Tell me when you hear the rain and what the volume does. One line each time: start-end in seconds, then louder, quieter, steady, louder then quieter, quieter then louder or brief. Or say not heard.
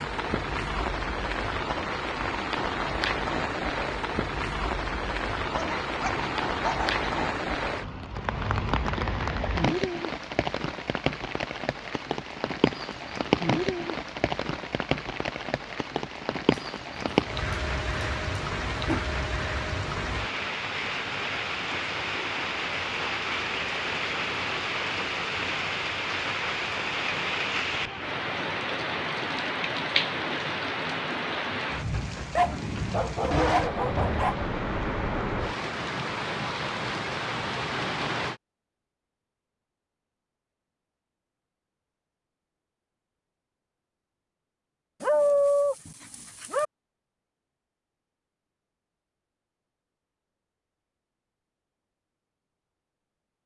0.0-38.4 steady.